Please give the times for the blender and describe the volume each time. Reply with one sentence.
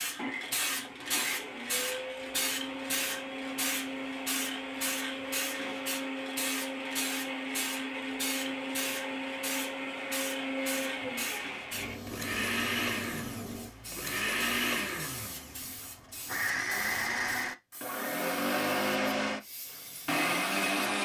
You can hear the blender from 0.1 to 21.0 s, getting louder.